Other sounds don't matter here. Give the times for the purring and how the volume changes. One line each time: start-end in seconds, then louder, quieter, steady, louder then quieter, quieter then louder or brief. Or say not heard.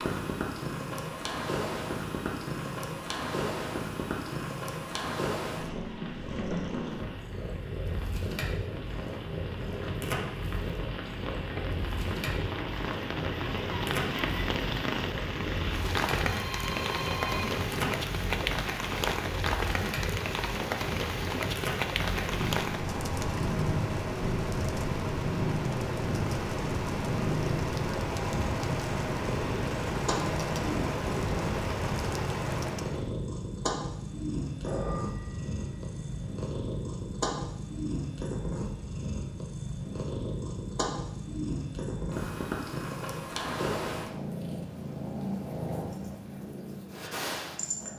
0.0-47.9 steady.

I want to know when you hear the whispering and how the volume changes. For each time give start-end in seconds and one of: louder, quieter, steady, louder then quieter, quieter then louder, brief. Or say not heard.
not heard.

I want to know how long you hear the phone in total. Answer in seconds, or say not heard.
3 s.